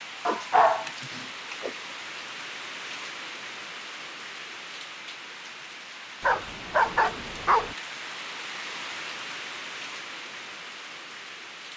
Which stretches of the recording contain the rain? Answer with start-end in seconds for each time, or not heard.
0.0-11.7.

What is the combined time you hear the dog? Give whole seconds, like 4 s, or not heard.
3 s.